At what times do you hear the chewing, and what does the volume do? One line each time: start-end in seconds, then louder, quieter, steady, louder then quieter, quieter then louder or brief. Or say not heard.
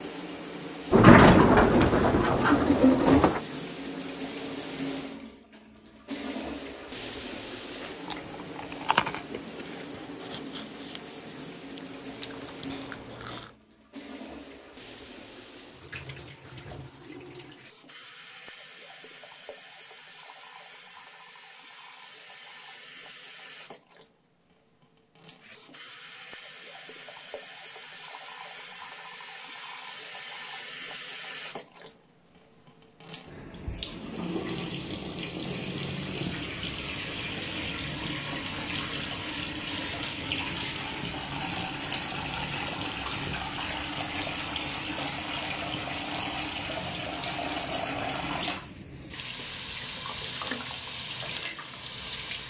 7.8-13.5 quieter then louder.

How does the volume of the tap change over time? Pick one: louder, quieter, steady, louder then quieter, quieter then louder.
quieter then louder.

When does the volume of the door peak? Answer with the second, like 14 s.
1 s.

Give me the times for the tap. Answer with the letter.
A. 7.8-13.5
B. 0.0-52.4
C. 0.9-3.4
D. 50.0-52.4
B.